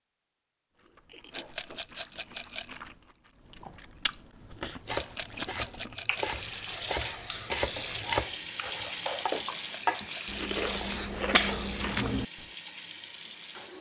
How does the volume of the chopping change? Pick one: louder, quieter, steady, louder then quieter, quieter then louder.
louder.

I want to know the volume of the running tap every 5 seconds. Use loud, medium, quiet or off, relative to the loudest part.
off, loud, loud.